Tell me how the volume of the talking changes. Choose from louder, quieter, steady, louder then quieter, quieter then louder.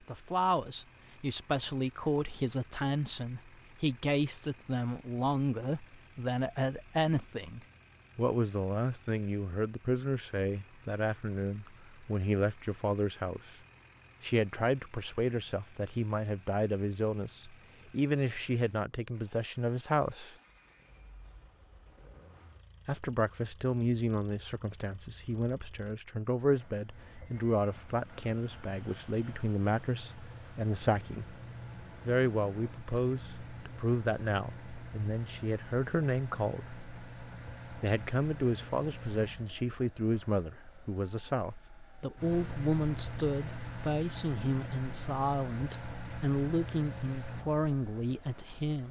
steady.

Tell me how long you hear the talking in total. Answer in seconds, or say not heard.
44 s.